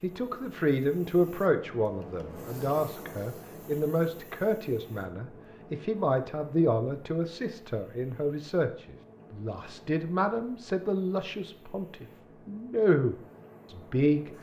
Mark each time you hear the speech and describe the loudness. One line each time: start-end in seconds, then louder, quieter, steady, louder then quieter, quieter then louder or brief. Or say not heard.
0.0-14.3 steady.